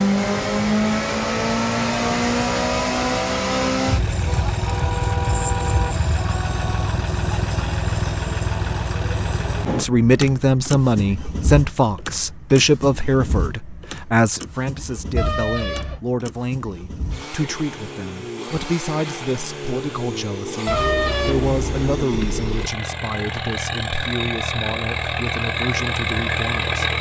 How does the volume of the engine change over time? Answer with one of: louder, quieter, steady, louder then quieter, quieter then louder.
quieter then louder.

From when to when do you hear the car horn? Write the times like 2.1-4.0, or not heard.
4.2-6.0, 15.2-16.0, 20.6-22.4.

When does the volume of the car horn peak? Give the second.
21 s.